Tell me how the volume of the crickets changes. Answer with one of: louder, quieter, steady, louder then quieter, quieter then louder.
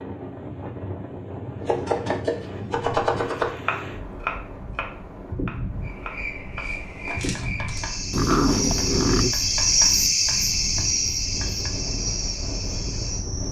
louder then quieter.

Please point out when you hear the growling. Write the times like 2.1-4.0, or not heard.
8.1-9.3.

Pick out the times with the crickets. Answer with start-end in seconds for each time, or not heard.
5.8-13.4.